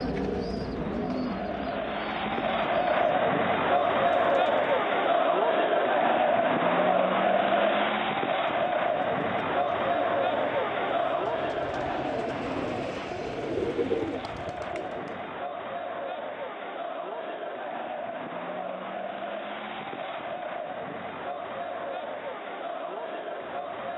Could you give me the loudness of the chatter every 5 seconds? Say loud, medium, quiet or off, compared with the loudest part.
loud, loud, medium, medium, medium.